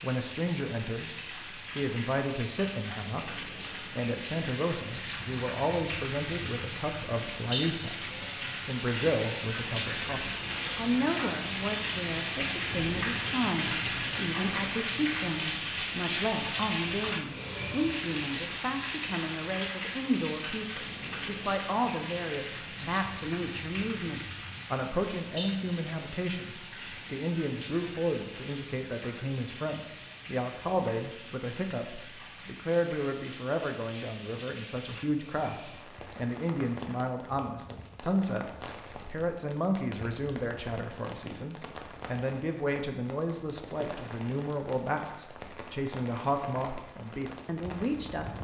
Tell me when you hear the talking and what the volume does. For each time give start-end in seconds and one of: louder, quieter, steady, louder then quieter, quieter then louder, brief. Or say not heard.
0.0-48.3 steady.